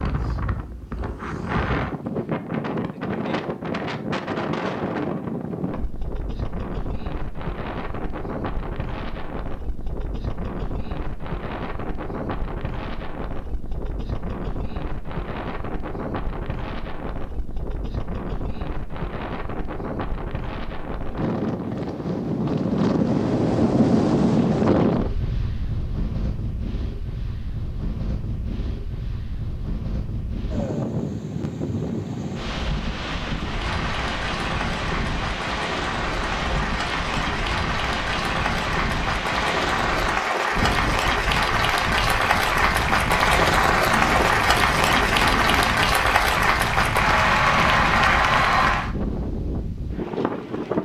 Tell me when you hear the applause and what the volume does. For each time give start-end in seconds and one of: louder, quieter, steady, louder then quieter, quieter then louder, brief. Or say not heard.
33.5-48.9 louder.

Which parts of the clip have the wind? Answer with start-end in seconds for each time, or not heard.
0.0-50.8.